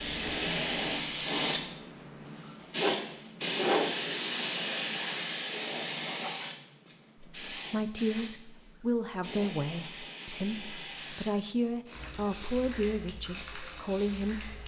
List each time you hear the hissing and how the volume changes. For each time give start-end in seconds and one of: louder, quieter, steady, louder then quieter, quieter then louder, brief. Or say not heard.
0.0-14.6 quieter.